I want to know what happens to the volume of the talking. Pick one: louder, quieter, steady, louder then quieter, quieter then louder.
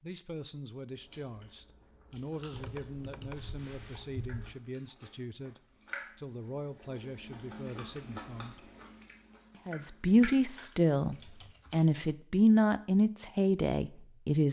louder.